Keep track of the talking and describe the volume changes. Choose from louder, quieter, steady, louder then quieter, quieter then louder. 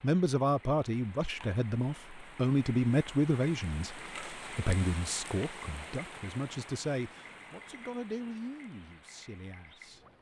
quieter.